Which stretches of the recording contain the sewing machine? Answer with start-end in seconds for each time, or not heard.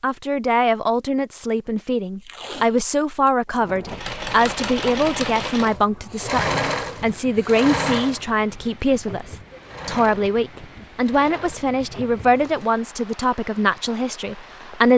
3.5-8.3, 9.7-12.7.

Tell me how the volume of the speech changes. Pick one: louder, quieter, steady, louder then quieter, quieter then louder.
steady.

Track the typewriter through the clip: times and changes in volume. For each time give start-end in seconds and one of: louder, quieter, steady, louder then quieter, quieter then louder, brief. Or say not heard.
not heard.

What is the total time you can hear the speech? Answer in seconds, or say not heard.
15 s.